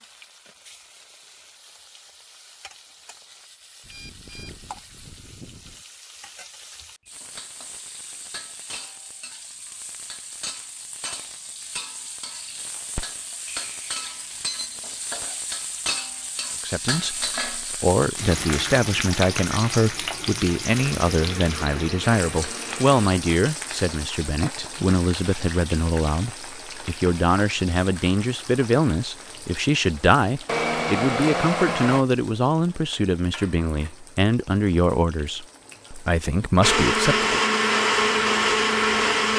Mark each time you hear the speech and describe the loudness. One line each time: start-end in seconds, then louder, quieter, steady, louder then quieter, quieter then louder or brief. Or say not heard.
16.6-37.4 steady.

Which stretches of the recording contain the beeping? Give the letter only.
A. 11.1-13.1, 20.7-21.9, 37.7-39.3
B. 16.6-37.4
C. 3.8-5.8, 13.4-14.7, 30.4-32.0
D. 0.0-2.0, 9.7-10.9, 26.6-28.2
C.